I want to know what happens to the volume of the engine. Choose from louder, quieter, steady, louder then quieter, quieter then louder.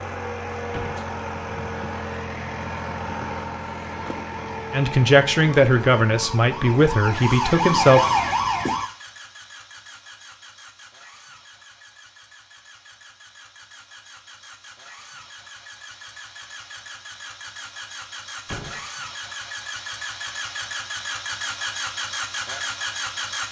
quieter then louder.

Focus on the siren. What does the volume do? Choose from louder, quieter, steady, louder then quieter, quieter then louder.
louder.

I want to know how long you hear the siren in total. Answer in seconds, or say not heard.
5 s.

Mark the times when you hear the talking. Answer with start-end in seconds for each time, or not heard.
4.7-8.0.